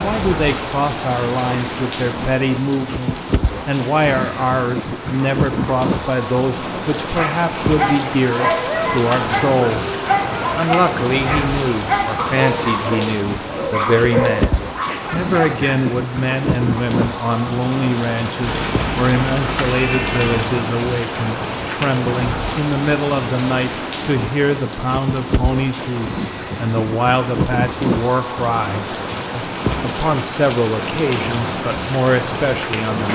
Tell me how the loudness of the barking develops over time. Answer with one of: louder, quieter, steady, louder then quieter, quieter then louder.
steady.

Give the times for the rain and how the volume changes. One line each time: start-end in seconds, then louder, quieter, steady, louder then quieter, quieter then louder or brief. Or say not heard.
0.0-33.1 steady.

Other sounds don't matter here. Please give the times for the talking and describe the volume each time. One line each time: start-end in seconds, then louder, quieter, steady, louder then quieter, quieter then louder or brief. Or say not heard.
0.0-33.1 steady.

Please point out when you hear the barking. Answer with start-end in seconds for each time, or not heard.
7.2-15.8.